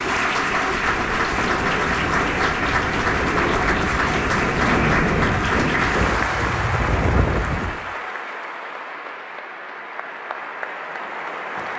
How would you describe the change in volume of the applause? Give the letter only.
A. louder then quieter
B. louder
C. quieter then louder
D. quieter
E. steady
D.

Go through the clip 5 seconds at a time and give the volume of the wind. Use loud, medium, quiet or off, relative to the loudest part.
loud, loud, off.